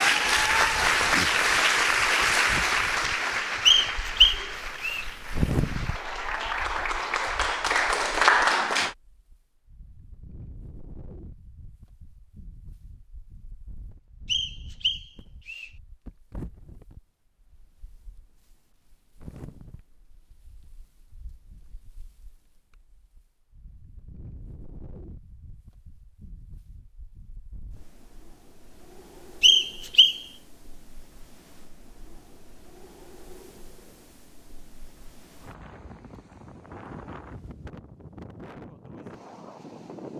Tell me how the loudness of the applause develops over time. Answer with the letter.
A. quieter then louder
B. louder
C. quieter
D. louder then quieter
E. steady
A.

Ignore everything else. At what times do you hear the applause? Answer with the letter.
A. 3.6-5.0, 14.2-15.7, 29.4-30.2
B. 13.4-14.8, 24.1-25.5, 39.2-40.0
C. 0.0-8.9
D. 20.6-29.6
C.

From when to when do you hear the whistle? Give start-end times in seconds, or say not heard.
3.6-5.0, 14.2-15.7, 29.4-30.2.